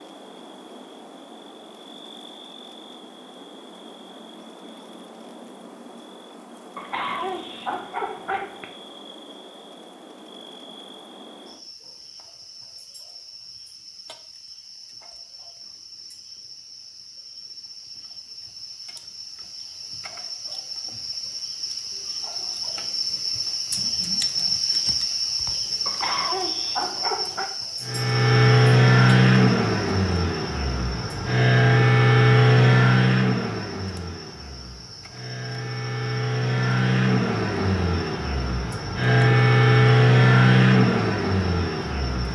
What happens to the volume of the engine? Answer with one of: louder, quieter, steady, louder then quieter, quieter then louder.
quieter then louder.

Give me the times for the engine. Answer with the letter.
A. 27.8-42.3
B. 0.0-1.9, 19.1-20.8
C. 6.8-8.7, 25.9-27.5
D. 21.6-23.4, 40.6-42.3
A.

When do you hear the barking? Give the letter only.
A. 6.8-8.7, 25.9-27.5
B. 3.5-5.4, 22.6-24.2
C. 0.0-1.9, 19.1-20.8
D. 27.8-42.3
A.